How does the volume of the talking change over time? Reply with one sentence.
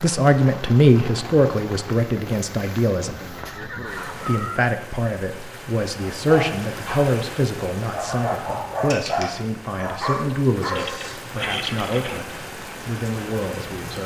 The volume of the talking goes down.